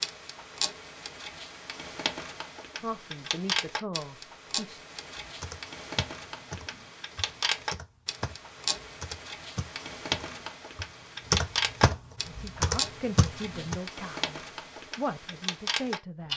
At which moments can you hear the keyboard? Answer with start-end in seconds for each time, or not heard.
5.2-13.8.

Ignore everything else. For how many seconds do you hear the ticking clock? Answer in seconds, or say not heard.
16 s.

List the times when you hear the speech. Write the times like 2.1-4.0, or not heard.
2.8-4.8, 12.2-16.3.